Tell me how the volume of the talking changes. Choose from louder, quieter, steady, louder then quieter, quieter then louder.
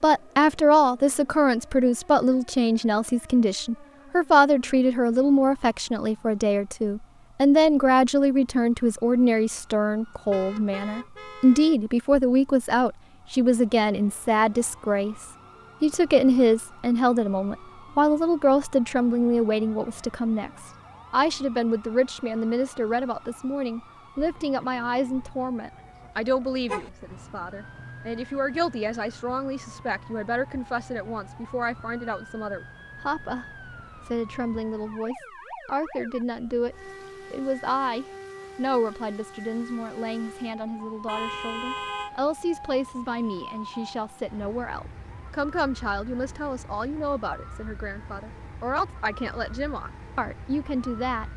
quieter.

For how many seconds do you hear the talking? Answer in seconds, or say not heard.
51 s.